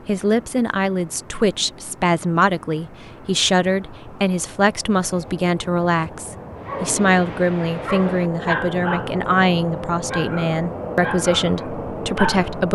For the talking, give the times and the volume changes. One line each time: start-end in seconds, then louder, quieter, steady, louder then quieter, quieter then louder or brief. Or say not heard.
0.1-12.6 steady.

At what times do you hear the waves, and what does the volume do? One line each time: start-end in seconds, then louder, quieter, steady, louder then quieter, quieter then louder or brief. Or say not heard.
not heard.